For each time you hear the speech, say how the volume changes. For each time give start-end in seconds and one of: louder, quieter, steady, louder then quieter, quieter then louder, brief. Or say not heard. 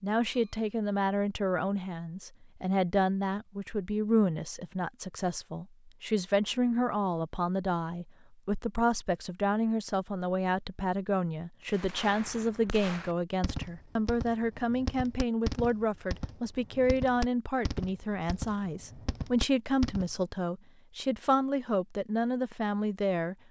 0.0-23.4 steady.